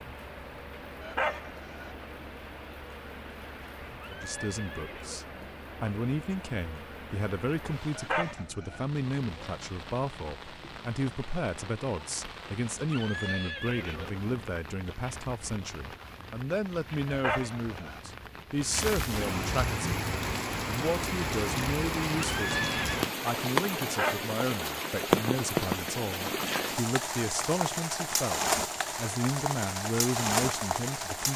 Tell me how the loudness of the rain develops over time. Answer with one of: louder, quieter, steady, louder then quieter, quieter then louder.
louder.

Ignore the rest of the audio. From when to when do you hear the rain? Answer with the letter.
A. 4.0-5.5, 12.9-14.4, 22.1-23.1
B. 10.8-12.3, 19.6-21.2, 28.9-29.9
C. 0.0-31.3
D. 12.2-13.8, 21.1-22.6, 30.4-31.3
C.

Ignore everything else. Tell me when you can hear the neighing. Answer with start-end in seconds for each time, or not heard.
4.0-5.5, 12.9-14.4, 22.1-23.1.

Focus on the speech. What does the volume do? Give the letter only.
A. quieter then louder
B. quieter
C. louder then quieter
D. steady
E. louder
D.